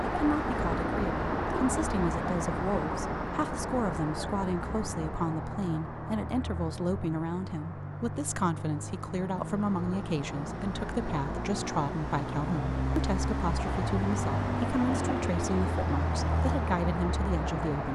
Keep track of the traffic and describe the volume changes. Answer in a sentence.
The volume of the traffic goes down, then up.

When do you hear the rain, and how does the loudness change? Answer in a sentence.
The rain can't be heard in this clip.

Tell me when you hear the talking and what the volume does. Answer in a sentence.
You can hear the talking from 0.0 to 17.9 s, at a steady volume.